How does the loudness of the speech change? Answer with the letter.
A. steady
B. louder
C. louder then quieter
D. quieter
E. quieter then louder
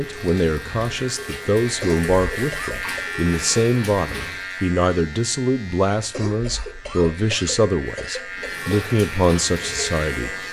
A.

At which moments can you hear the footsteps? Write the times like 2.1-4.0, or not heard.
not heard.